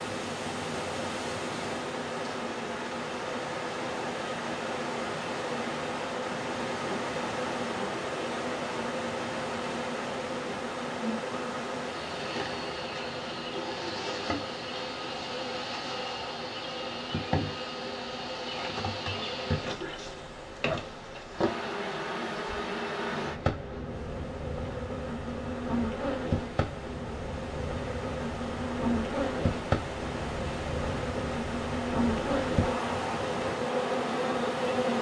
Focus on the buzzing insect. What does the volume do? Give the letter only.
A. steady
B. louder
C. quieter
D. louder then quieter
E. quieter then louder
B.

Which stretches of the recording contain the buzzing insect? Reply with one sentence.
The buzzing insect can be heard from 0.0 to 34.9 s.